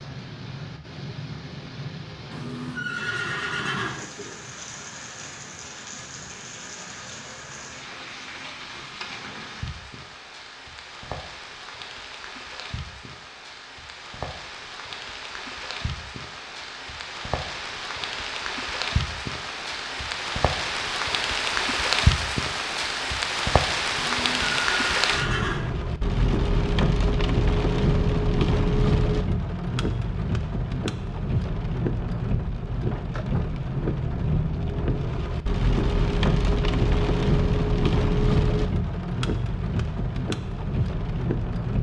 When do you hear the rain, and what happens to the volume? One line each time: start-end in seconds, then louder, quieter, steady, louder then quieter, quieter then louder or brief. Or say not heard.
0.0-41.7 louder.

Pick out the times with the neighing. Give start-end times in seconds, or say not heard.
2.3-4.0, 23.9-25.7.